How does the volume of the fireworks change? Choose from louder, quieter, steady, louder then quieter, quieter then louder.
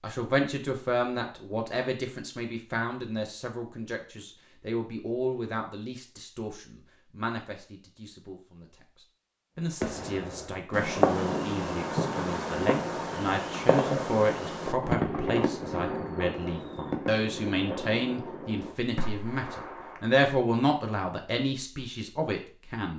quieter.